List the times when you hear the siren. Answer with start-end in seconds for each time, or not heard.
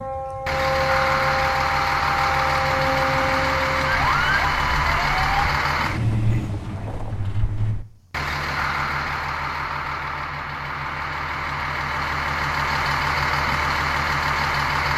0.0-5.5.